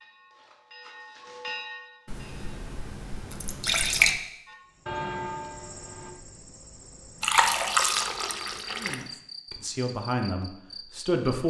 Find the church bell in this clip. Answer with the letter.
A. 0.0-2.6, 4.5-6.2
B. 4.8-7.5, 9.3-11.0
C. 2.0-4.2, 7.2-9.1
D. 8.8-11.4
A.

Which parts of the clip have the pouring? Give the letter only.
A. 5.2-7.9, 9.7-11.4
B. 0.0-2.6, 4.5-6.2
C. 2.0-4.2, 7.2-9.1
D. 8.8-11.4
C.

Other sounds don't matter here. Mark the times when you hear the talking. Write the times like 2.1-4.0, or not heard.
8.8-11.4.